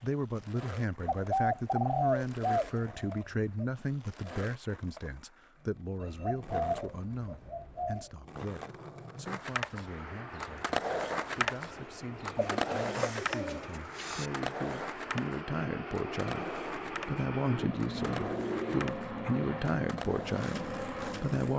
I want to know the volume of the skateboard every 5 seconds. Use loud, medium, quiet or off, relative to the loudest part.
quiet, medium, loud, medium, medium.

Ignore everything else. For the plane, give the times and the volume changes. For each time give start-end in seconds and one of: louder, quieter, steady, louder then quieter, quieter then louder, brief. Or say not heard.
9.7-21.5 louder.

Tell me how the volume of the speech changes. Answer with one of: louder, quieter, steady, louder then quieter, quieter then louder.
quieter then louder.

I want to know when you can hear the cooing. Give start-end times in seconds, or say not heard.
1.1-3.6, 6.0-8.1, 12.3-14.3, 17.5-19.4.